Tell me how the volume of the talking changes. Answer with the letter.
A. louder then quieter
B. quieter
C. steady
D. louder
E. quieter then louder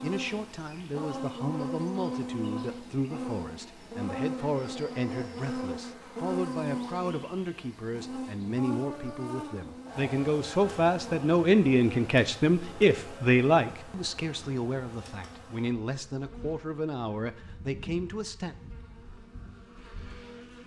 A.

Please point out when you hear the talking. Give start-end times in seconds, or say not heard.
0.0-18.6.